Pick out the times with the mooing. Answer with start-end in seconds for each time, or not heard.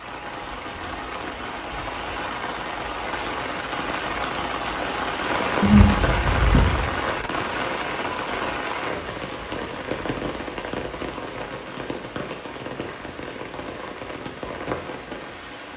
5.6-7.0.